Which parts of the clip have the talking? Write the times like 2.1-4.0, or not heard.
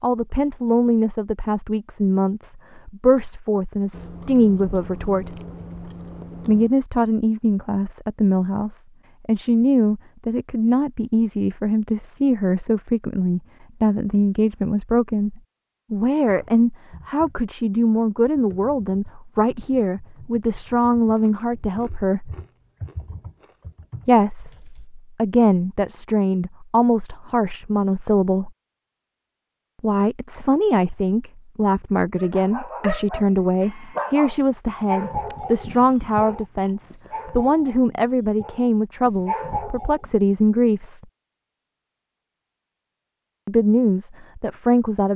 0.0-5.4, 6.4-22.4, 24.1-28.5, 29.8-41.0, 43.5-45.1.